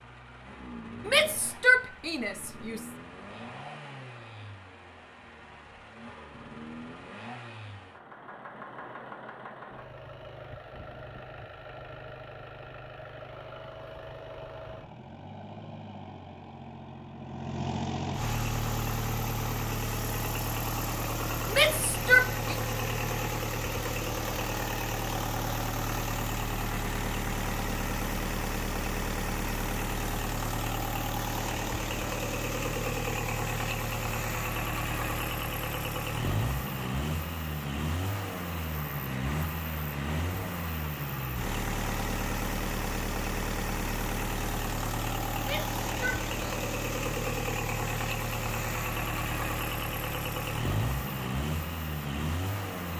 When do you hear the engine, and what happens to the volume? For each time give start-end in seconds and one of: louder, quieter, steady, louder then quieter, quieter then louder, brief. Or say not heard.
0.0-52.9 louder.